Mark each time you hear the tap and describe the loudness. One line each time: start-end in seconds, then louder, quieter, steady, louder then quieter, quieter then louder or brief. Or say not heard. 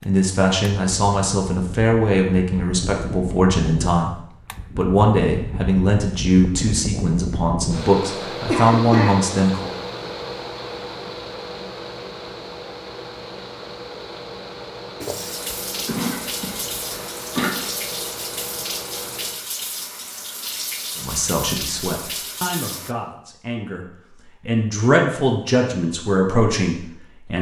15.0-22.9 steady.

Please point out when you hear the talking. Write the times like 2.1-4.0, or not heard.
0.0-9.8, 20.9-27.3.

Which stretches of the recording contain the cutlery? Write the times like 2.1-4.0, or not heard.
not heard.